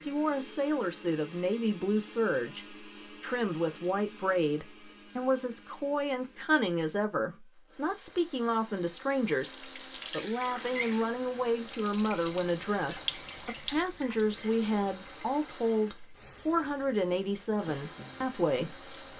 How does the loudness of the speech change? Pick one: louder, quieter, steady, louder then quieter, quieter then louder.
steady.